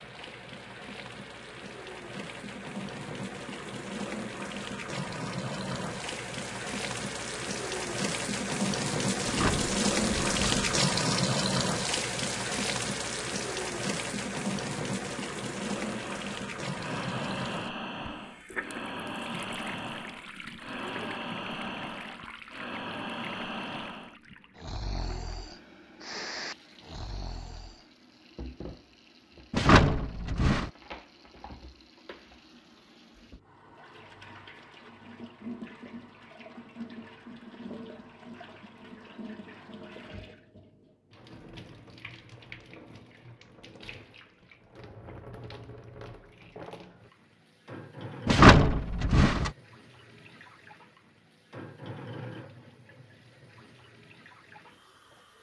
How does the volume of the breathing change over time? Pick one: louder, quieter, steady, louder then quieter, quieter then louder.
steady.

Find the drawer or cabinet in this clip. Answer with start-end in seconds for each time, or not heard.
9.2-10.8, 29.5-30.7, 48.2-49.5.